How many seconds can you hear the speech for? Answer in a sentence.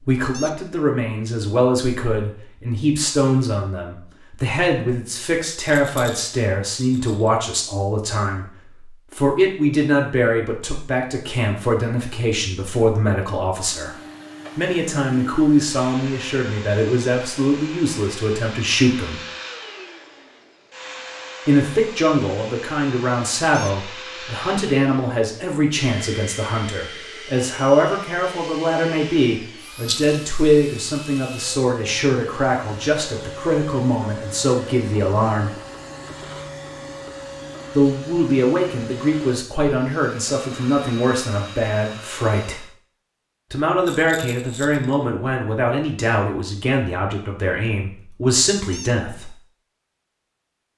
The speech can be heard for 43 seconds in total.